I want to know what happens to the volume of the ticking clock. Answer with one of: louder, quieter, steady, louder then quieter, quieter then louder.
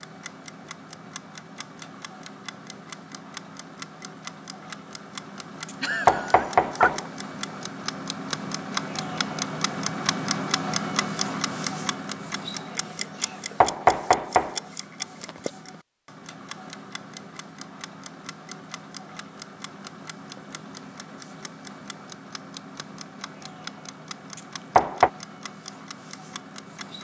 louder then quieter.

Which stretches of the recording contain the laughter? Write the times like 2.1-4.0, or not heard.
5.8-7.1.